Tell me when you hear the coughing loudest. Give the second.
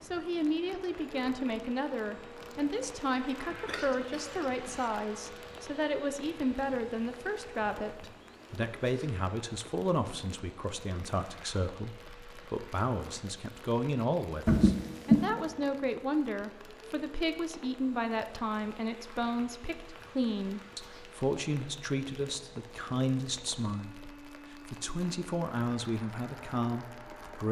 15 s.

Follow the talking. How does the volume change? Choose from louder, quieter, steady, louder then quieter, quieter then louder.
steady.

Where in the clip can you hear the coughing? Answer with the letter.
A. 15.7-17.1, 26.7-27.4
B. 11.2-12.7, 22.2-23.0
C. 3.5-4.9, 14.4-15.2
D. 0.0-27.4
C.